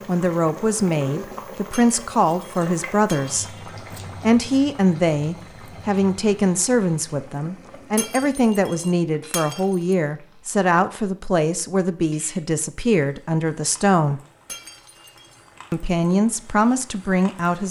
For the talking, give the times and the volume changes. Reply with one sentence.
You can hear the talking from 0.1 to 14.2 s, at a steady volume; and briefly from 15.7 to 17.6 s.